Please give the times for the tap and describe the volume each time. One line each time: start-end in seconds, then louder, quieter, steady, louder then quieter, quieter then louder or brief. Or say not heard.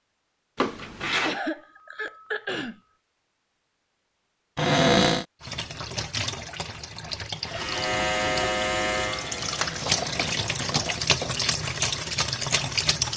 5.4-13.1 louder.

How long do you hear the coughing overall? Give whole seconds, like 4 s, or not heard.
3 s.